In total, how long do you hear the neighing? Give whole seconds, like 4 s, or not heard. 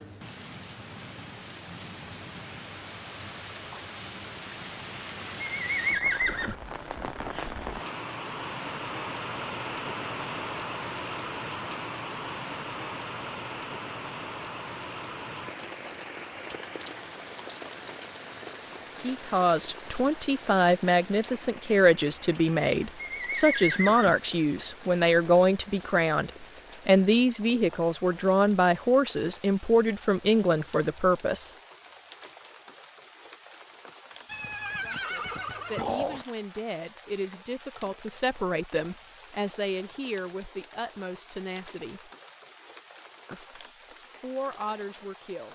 4 s.